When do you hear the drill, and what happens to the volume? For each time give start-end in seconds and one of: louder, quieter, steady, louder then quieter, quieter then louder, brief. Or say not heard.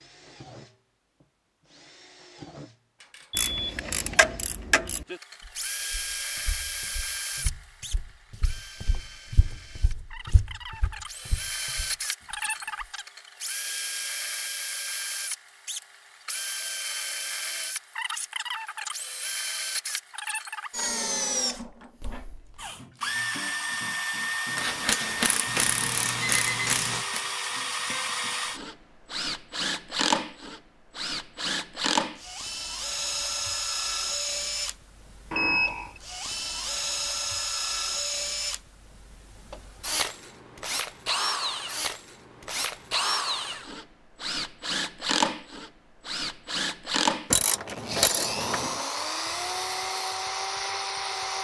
0.0-51.3 louder.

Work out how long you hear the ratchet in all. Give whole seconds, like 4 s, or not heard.
6 s.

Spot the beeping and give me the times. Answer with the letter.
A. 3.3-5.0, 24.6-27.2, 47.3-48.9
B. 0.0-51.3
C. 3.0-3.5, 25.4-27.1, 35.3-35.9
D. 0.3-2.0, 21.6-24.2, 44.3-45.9
C.